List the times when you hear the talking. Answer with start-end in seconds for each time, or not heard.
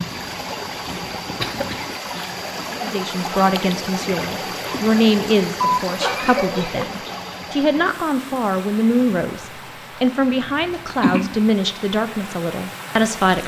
2.8-13.4.